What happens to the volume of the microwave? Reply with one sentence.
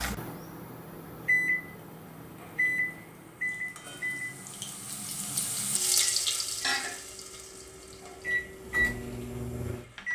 The loudness of the microwave goes down, then up.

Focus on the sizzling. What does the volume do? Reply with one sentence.
The volume of the sizzling goes up, then down.